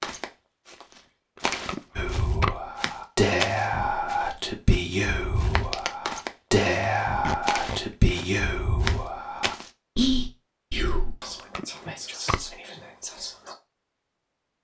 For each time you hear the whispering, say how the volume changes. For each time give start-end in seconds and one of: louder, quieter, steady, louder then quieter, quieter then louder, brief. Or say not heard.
1.9-13.6 quieter.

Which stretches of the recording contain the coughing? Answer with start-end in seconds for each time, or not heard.
not heard.